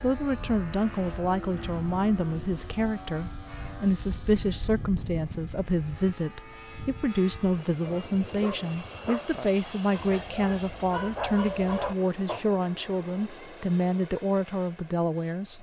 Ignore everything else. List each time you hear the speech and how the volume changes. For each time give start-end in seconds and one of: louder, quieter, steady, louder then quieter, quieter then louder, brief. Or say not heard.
0.0-15.5 steady.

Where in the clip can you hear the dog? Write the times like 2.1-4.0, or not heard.
7.8-12.4.